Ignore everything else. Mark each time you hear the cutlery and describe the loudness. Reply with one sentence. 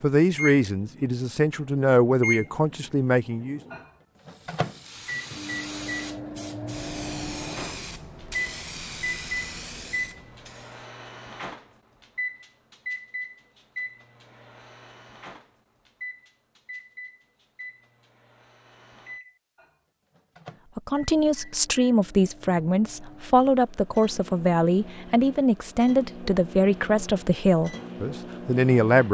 The cutlery can't be heard in this clip.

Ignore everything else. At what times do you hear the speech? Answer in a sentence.
The speech can be heard from 0.0 to 3.6 s and from 20.8 to 29.0 s.